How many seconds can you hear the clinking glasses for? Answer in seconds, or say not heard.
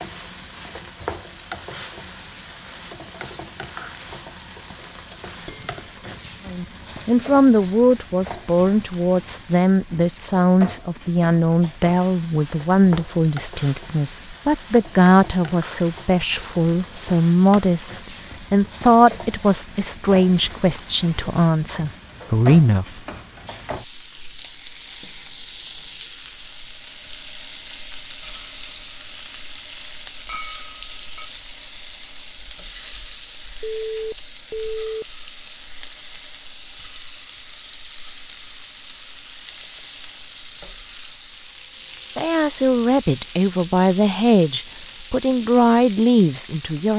2 s.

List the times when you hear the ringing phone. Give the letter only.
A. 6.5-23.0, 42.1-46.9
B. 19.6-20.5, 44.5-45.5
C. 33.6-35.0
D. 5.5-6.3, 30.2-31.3
C.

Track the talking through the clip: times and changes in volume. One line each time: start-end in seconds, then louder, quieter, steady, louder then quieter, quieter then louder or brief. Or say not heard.
6.5-23.0 steady
42.1-46.9 steady.